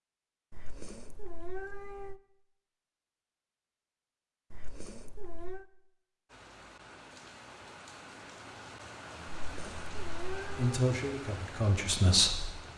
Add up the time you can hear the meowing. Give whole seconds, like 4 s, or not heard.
4 s.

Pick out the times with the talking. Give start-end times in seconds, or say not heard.
10.6-12.5.